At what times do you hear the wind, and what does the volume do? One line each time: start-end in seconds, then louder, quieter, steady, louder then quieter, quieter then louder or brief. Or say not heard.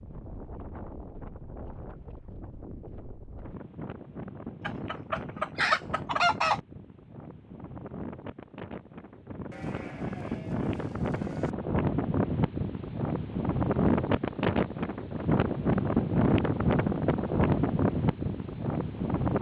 0.0-19.3 louder.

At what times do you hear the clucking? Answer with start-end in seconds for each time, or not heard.
4.7-6.6.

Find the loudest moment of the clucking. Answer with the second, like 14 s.
6 s.